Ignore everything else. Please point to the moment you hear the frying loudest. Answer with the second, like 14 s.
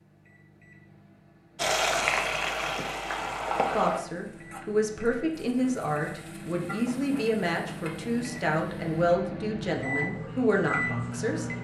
2 s.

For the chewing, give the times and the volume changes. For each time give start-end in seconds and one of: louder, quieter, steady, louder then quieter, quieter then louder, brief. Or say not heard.
not heard.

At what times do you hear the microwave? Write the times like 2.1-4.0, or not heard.
0.0-11.5.